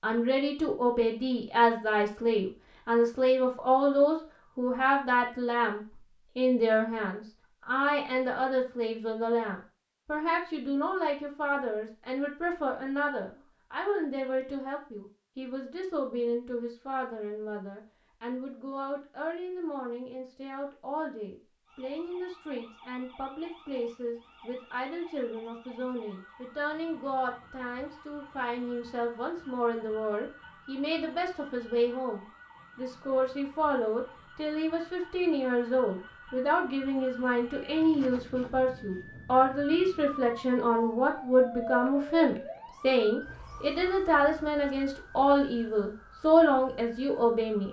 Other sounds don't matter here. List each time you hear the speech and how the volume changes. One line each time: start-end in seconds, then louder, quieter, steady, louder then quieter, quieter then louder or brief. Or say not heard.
0.0-47.6 quieter then louder.